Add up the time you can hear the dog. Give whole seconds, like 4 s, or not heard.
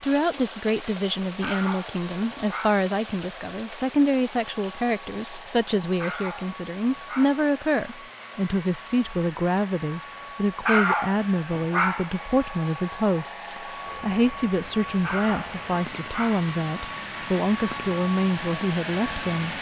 6 s.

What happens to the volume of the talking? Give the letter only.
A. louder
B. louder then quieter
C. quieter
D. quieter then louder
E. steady
E.